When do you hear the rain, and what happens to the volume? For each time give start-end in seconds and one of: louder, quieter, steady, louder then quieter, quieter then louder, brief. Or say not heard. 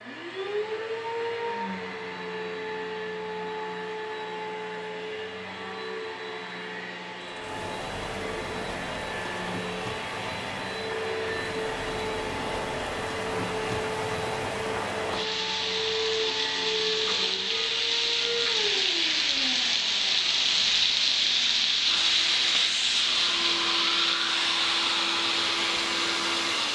7.2-26.6 louder.